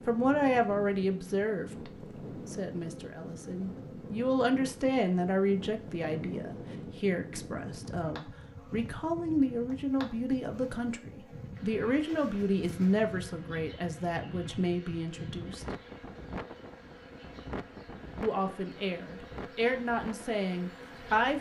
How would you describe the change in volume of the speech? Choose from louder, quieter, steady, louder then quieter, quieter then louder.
steady.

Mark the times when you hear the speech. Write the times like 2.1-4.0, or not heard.
0.1-15.7, 18.2-21.3.